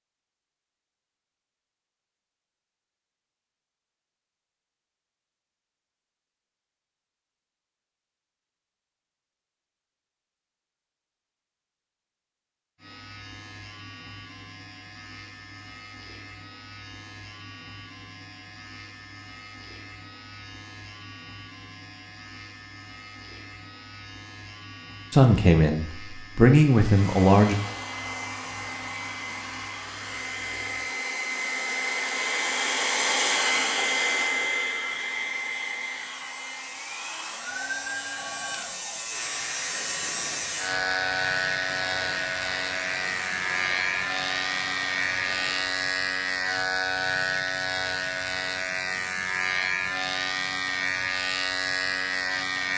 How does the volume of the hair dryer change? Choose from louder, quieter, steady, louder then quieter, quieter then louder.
louder then quieter.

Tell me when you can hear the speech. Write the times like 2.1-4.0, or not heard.
25.1-27.6.